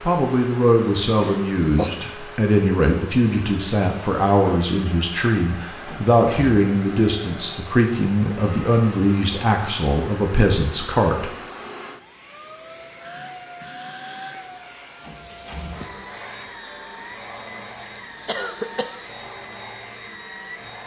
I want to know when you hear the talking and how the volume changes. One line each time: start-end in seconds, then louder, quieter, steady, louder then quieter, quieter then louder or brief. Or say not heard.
0.0-11.3 steady.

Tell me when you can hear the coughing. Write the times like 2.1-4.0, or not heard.
1.2-2.0, 18.2-19.1.